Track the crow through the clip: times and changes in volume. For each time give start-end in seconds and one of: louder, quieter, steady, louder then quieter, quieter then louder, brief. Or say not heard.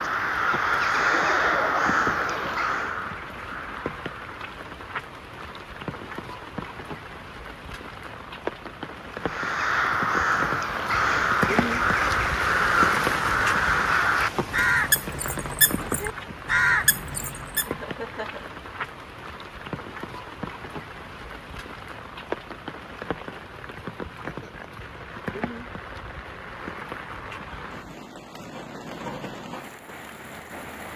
0.0-4.3 quieter
9.2-17.7 steady.